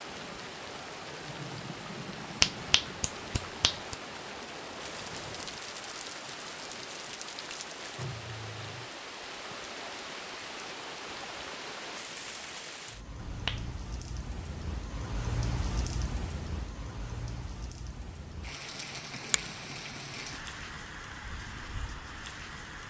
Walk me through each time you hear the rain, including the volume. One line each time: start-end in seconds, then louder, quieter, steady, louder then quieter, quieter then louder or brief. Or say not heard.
0.0-22.8 steady.